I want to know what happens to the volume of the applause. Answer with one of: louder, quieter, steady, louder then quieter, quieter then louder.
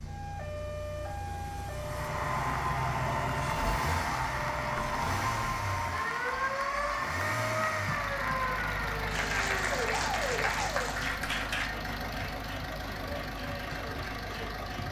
quieter.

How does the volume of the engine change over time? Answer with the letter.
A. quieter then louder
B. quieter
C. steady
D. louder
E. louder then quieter
D.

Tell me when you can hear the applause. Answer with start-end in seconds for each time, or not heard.
1.8-14.8.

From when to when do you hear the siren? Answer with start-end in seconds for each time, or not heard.
0.0-10.8.